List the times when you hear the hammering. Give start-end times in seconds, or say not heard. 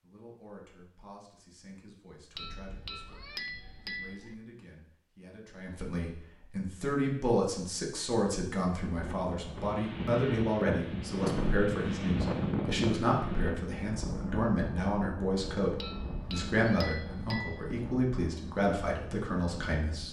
2.4-4.3, 15.8-17.8.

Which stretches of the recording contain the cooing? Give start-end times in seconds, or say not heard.
not heard.